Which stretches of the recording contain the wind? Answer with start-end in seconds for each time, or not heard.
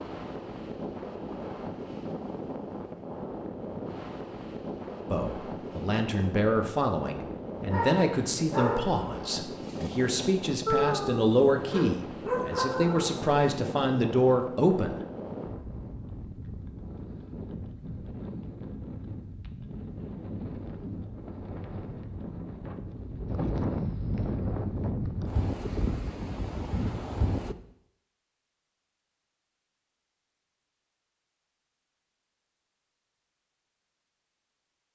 0.0-27.6.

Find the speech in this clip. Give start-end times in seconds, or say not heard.
5.1-14.9.